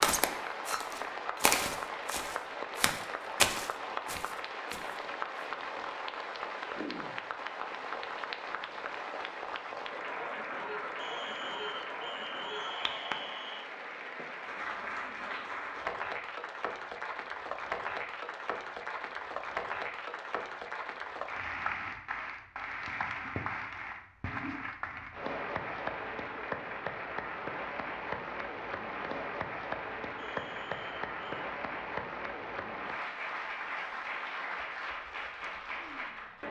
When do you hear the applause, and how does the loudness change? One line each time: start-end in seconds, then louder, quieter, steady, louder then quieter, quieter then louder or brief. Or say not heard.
0.0-36.4 steady.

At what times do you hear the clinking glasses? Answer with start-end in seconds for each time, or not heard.
0.7-1.4.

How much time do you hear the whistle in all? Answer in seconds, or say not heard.
4 s.